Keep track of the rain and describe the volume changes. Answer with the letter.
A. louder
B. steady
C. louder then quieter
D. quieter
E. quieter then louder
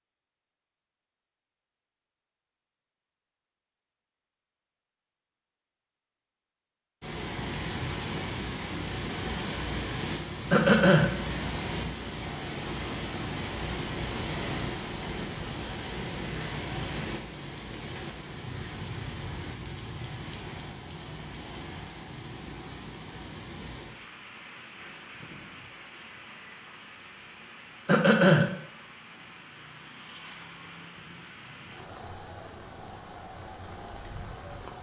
D.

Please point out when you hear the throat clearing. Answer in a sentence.
The throat clearing can be heard from 10.5 to 11.1 s and from 27.9 to 28.4 s.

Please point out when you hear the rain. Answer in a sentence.
The rain can be heard from 7.0 to 34.7 s.